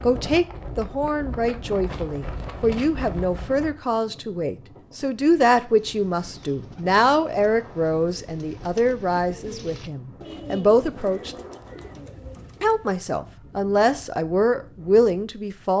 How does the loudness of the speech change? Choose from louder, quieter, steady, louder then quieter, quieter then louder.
steady.